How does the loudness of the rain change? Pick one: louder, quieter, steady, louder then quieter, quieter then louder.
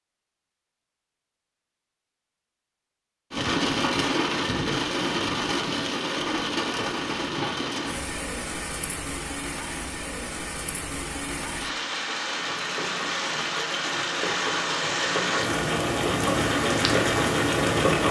quieter then louder.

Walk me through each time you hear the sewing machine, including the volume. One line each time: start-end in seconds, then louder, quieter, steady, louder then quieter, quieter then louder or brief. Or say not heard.
12.2-18.0 louder.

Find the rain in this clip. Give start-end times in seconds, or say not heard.
3.3-18.0.